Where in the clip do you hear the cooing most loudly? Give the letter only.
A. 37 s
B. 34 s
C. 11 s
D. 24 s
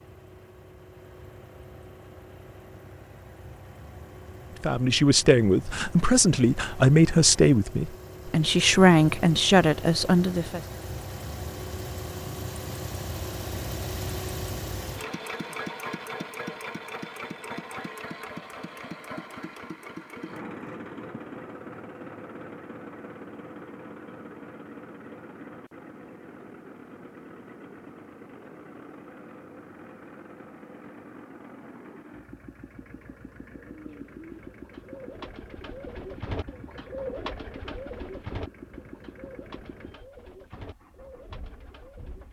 A.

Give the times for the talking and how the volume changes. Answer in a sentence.
The talking can be heard from 4.6 to 10.6 s, at a steady volume.